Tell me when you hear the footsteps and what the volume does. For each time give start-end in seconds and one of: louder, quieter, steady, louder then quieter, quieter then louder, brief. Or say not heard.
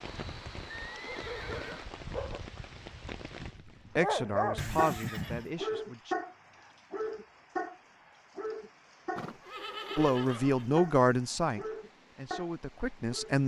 not heard.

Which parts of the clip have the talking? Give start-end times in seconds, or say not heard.
4.0-6.2, 9.9-13.4.